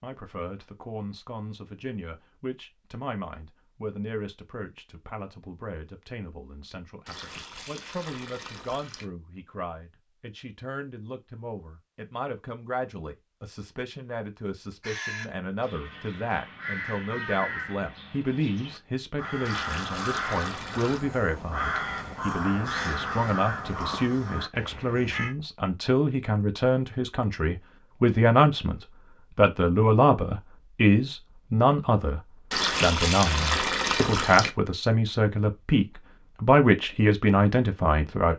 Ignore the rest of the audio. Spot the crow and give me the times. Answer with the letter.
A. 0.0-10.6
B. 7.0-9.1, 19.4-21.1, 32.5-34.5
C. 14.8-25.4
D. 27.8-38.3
C.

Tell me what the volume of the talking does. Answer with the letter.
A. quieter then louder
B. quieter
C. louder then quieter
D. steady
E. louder
E.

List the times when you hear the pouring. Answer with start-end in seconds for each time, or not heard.
7.0-9.1, 19.4-21.1, 32.5-34.5.